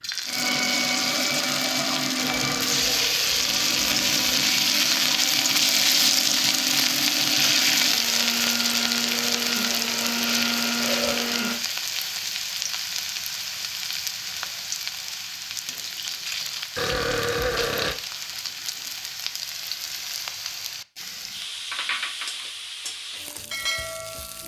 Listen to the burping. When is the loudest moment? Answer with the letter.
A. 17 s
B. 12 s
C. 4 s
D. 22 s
A.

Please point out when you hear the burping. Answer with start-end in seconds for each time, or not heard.
2.1-4.5, 10.8-11.3, 16.8-17.9.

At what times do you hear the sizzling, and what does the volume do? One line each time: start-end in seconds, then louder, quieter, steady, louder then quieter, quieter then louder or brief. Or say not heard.
0.0-24.4 quieter.